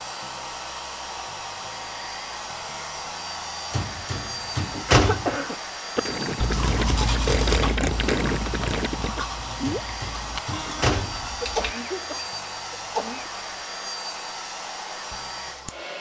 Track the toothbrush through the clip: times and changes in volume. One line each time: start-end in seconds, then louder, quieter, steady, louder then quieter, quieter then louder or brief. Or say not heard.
6.0-11.8 quieter then louder.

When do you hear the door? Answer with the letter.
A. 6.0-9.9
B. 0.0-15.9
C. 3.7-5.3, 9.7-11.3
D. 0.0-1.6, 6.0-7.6
C.